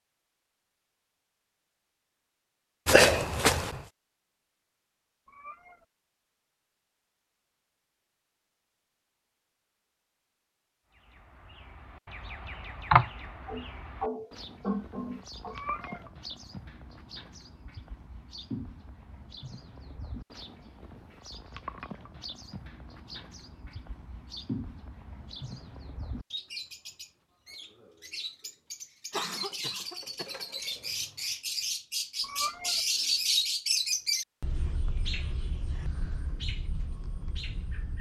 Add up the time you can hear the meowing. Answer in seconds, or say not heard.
2 s.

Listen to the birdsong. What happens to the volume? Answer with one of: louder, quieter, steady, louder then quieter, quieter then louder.
louder.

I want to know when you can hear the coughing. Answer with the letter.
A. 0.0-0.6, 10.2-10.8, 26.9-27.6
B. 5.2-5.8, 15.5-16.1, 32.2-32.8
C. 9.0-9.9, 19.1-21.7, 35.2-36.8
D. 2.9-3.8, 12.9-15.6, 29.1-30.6
D.